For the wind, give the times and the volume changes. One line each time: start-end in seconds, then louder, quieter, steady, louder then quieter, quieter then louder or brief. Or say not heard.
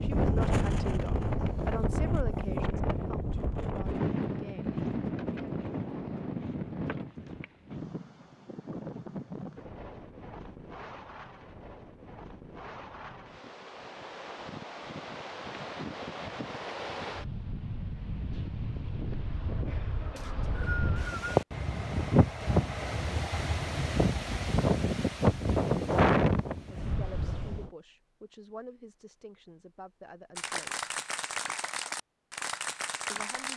0.0-27.7 quieter then louder.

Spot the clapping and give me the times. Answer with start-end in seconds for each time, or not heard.
30.4-33.5.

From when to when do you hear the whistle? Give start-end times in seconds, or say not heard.
20.1-21.4.